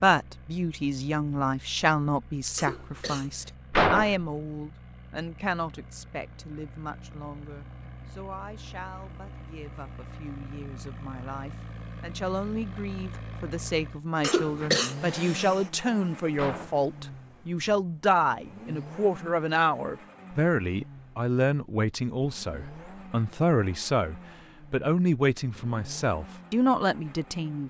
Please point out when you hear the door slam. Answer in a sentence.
The door slam can be heard from 3.7 to 4.2 s and from 16.4 to 16.9 s.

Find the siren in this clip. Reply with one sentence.
The siren can't be heard in this clip.